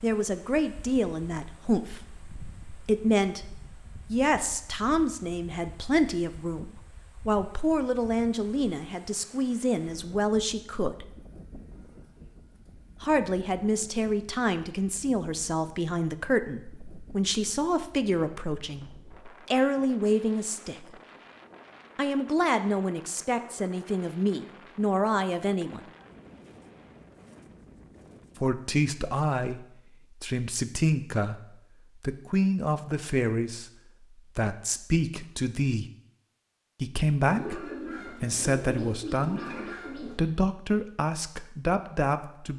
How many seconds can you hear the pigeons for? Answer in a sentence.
You can hear the pigeons for 3 seconds altogether.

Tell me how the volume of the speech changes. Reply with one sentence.
The loudness of the speech stays about the same.